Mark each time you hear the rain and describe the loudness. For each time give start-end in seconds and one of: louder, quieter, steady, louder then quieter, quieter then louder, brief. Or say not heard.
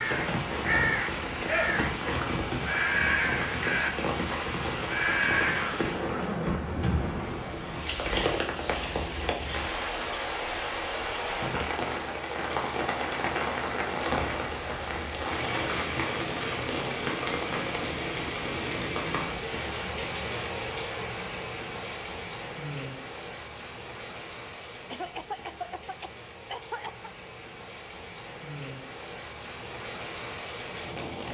0.0-31.2 quieter.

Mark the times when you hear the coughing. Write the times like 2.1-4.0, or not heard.
5.5-6.8, 24.9-27.1.